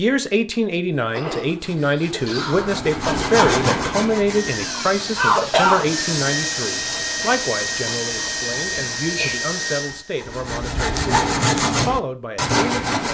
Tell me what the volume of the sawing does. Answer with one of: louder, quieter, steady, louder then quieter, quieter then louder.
quieter then louder.